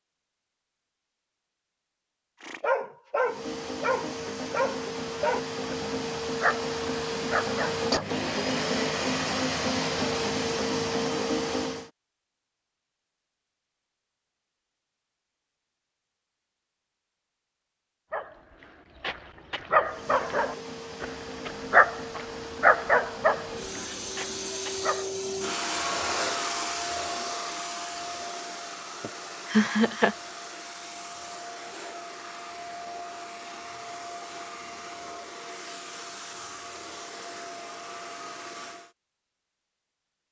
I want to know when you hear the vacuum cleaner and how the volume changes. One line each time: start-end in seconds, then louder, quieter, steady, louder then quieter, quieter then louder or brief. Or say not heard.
3.2-11.9 louder
19.8-39.0 louder then quieter.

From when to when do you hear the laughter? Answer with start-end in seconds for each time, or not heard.
29.0-30.1.